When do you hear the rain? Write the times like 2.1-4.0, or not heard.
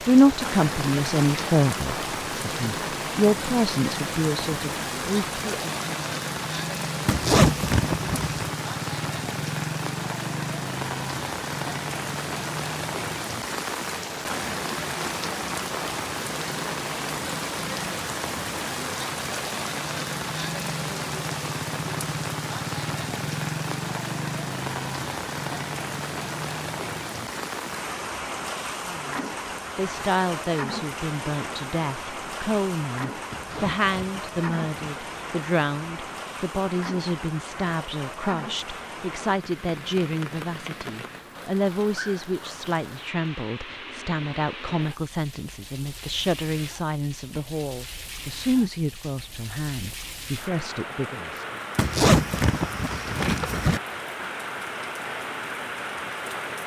0.0-56.6.